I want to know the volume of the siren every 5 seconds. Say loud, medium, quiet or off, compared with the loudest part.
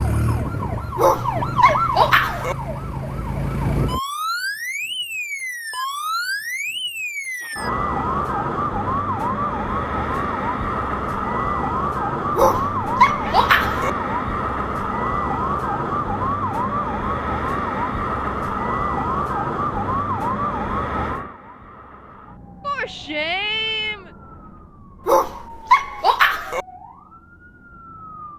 loud, loud, loud, loud, medium, quiet.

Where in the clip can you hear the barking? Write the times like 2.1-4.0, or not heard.
0.9-2.5, 12.3-13.9, 25.1-26.6.